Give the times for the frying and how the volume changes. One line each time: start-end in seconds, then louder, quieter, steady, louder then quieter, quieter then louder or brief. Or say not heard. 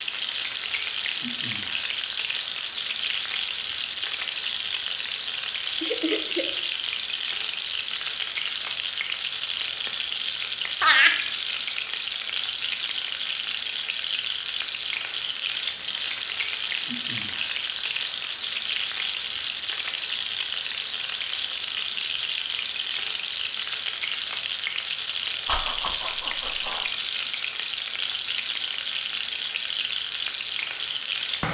0.0-31.4 steady.